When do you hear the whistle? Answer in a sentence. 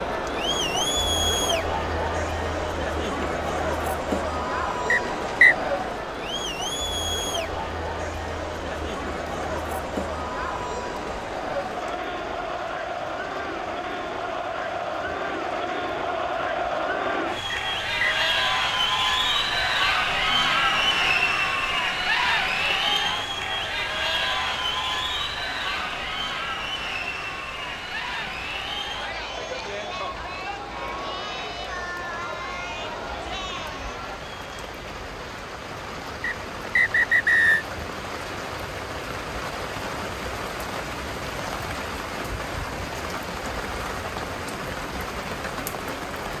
The whistle can be heard from 4.9 to 5.5 s, from 17.5 to 18.2 s and from 36.2 to 37.6 s.